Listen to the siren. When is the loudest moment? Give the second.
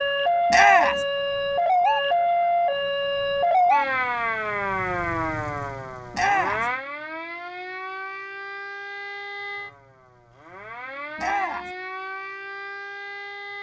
2 s.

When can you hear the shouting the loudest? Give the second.
1 s.